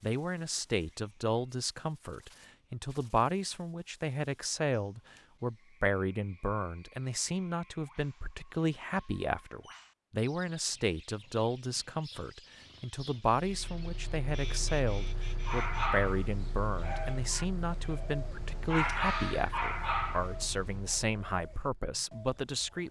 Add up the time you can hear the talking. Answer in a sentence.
You can hear the talking for 23 seconds altogether.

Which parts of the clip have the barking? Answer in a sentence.
The barking can be heard from 15.4 to 20.9 s.